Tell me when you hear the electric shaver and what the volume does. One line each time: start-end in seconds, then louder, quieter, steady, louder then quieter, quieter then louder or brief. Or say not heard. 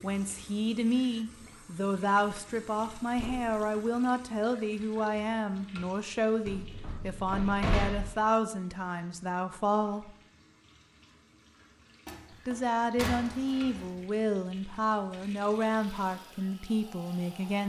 not heard.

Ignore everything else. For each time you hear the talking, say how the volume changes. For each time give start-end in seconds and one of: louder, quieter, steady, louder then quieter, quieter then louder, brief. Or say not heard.
0.0-10.1 steady
12.4-17.6 steady.